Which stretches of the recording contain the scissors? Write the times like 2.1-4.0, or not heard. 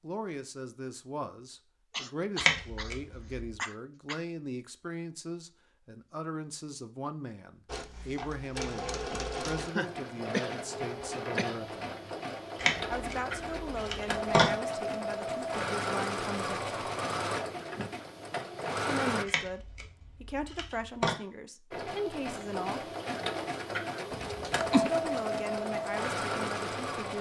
2.4-3.5, 12.6-14.6, 19.2-21.1.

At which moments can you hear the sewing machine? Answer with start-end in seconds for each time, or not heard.
7.7-19.2, 21.7-27.1.